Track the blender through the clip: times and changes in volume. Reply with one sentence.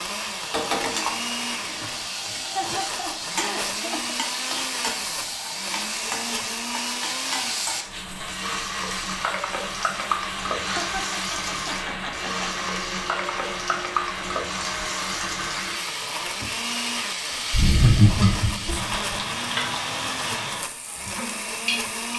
The blender can be heard from 0.0 to 22.1 s, at a steady volume.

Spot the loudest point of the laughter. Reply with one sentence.
The volume of the laughter peaks at 18 seconds.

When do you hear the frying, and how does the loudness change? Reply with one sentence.
You can hear the frying from 0.0 to 21.9 s, at a steady volume.